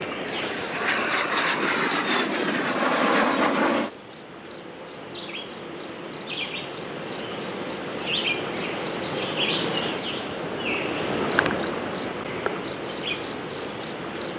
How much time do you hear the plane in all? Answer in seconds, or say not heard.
4 s.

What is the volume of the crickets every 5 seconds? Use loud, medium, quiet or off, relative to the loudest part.
medium, loud, loud.